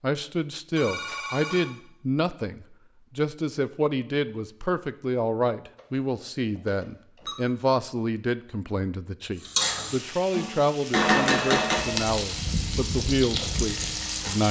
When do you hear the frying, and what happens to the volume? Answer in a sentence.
You can hear the frying from 9.4 to 14.4 s, getting louder then quieter.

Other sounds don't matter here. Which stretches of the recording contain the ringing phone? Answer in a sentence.
The ringing phone can be heard from 0.8 to 1.6 s, from 5.8 to 7.3 s and from 11.2 to 12.1 s.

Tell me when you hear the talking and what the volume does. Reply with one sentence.
The talking can be heard from 0.0 to 14.4 s, at a steady volume.